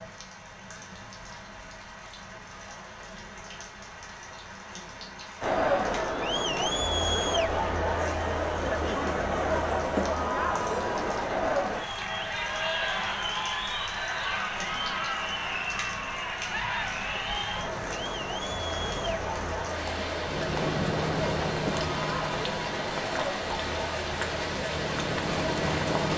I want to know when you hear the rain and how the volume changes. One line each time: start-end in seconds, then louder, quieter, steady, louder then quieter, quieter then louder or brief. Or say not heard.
0.0-26.1 louder.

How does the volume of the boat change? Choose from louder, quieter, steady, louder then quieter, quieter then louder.
quieter then louder.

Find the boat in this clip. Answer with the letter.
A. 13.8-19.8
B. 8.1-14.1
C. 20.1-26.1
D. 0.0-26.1
C.